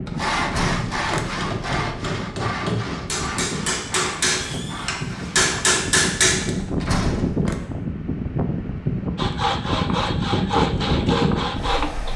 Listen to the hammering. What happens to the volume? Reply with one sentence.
The loudness of the hammering goes up.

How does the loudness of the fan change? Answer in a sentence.
The volume of the fan goes up.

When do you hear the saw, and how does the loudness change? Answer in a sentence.
You can hear the saw from 0.1 to 5.7 s, getting quieter; and briefly from 9.2 to 12.1 s.